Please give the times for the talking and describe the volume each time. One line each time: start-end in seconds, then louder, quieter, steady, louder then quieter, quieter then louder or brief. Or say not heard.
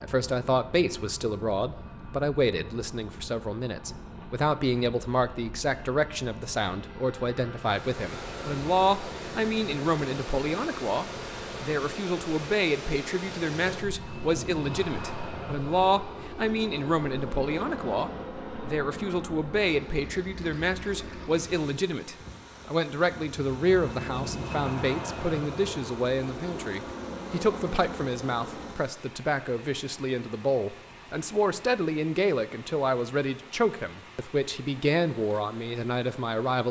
0.0-36.6 steady.